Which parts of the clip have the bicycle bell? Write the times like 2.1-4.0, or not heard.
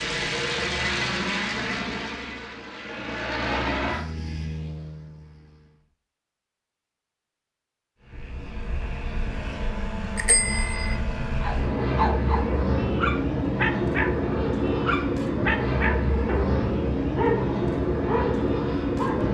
10.2-10.9.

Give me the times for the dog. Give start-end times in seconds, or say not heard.
11.4-19.2.